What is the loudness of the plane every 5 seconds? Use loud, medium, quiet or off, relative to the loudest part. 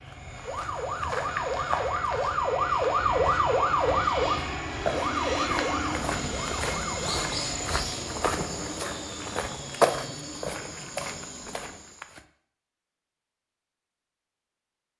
loud, loud, medium.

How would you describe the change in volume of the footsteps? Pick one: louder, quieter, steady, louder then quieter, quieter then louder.
louder.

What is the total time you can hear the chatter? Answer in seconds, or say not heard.
not heard.